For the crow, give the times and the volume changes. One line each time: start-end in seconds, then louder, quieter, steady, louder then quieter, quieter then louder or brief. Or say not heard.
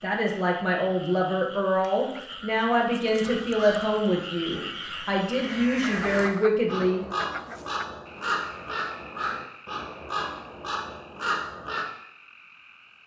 3.2-11.8 louder.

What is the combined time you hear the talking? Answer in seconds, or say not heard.
7 s.